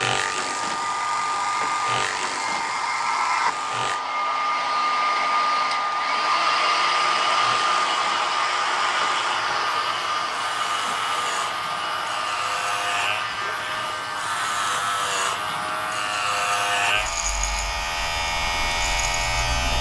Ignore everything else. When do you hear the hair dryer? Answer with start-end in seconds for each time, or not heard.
0.1-19.7.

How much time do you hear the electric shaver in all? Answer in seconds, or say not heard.
17 s.